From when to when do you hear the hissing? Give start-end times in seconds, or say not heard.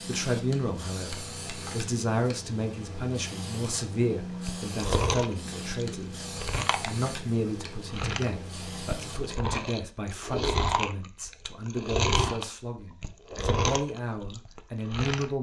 0.0-9.3.